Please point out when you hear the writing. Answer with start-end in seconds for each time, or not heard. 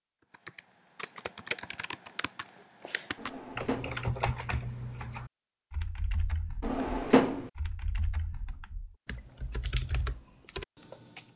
not heard.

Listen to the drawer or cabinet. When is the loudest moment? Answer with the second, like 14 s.
7 s.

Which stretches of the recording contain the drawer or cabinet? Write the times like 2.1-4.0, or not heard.
3.1-4.0, 6.6-7.5.